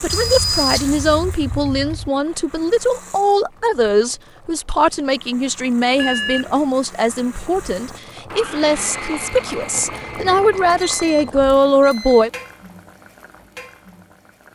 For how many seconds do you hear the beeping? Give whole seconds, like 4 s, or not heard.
4 s.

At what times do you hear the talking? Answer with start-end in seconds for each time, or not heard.
0.0-12.3.